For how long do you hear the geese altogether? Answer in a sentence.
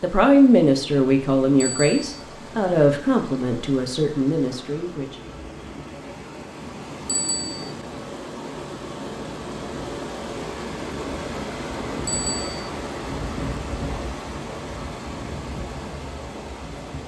The geese can't be heard in this clip.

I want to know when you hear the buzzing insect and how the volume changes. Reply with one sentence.
You can't hear the buzzing insect here.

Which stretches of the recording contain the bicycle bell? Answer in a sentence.
You can hear the bicycle bell from 1.6 to 2.0 s, from 7.0 to 7.7 s and from 12.1 to 12.7 s.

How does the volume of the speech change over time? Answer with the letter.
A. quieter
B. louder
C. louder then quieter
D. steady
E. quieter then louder
A.